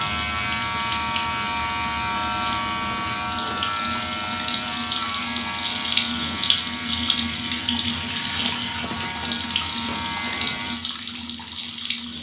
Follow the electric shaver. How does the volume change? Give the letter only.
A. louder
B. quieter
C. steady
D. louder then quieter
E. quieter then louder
B.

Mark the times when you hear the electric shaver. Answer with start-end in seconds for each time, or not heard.
0.0-10.8.